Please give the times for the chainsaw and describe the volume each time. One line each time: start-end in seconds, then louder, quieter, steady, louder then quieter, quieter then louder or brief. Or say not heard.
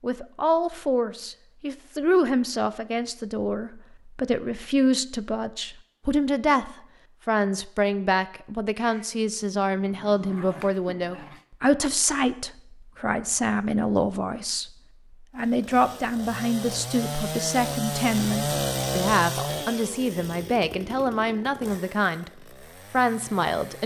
15.3-23.8 louder then quieter.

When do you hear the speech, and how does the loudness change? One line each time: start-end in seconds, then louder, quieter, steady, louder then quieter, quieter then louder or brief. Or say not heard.
0.0-23.8 steady.